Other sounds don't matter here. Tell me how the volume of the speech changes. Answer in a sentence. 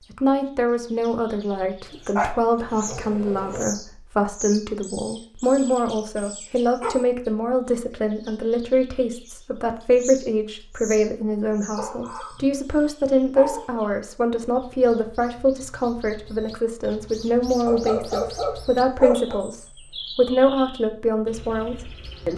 The loudness of the speech stays about the same.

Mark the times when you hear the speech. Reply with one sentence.
The speech can be heard from 0.1 to 22.3 s.